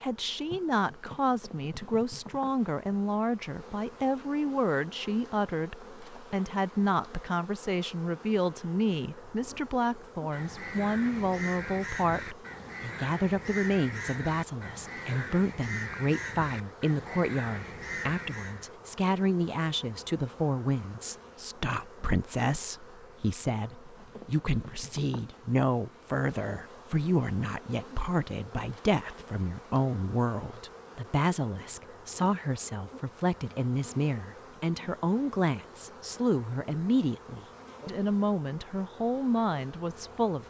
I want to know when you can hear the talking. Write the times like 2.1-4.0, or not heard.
0.0-40.4.